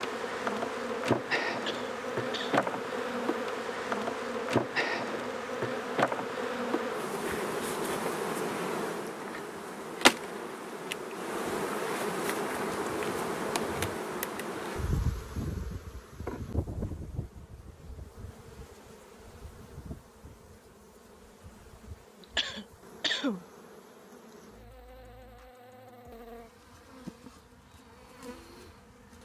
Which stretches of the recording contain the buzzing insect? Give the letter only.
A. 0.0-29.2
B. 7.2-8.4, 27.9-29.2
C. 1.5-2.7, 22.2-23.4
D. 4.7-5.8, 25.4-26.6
A.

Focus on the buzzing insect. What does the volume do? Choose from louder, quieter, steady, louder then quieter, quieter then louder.
quieter.